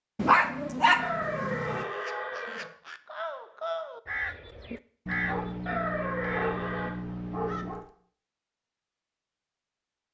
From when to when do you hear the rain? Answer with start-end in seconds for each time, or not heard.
not heard.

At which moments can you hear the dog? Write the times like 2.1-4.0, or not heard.
0.1-1.9, 5.0-7.8.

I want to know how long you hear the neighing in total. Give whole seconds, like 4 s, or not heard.
3 s.